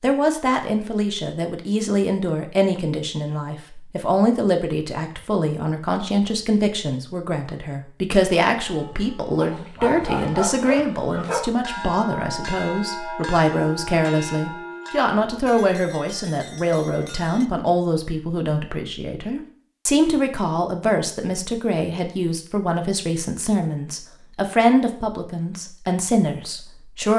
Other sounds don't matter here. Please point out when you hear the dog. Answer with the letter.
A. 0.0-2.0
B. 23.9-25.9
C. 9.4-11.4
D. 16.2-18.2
C.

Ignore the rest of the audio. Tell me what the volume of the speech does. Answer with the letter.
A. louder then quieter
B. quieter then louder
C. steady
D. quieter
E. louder
C.